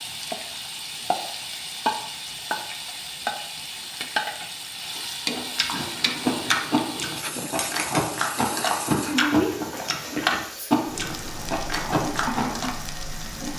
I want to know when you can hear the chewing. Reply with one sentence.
The chewing can be heard from 5.3 to 12.8 s.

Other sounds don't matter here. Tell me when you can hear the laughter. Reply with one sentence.
The laughter can't be heard in this clip.